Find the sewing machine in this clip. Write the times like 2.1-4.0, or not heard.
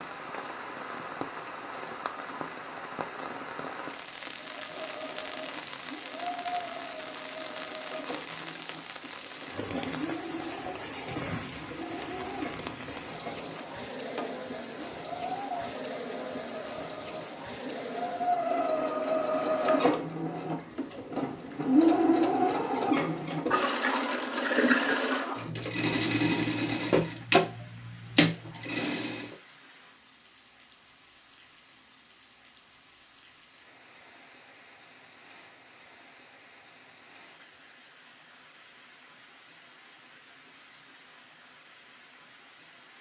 4.3-29.4.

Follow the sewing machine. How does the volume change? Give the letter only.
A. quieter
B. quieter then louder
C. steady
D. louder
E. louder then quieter
D.